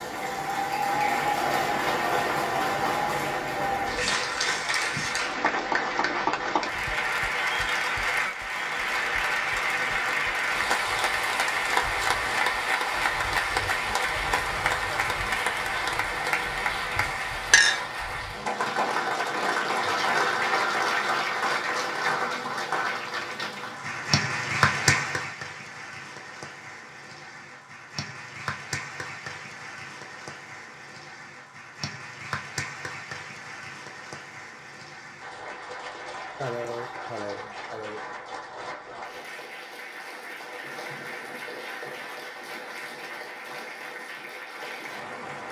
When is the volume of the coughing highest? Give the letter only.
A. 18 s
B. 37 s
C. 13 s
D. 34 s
B.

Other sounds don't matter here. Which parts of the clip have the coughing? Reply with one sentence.
The coughing can be heard from 36.4 to 38.0 s.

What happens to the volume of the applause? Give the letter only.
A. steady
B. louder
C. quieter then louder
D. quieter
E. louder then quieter
D.